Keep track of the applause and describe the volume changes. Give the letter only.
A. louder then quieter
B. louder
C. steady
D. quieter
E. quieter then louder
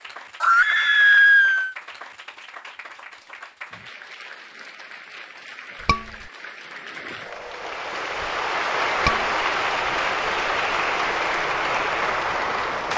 B.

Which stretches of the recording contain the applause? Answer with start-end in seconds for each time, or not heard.
0.0-12.9.